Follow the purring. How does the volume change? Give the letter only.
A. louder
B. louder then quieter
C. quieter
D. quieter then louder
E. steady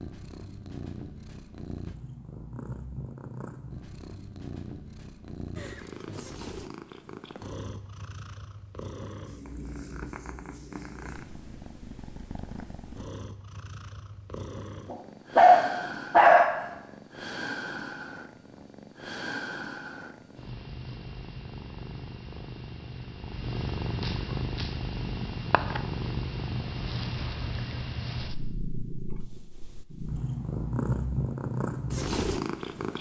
A.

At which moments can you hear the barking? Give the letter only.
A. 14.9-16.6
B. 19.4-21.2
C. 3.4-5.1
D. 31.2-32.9
A.